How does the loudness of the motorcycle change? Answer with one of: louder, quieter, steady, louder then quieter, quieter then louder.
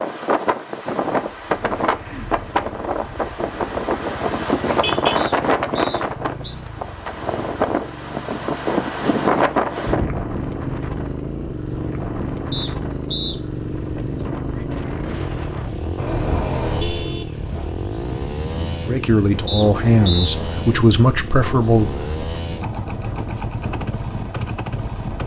louder.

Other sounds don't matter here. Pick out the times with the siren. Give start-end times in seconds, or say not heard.
not heard.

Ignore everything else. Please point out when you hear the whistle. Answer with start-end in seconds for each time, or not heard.
5.2-6.5, 12.5-13.3, 19.4-20.3.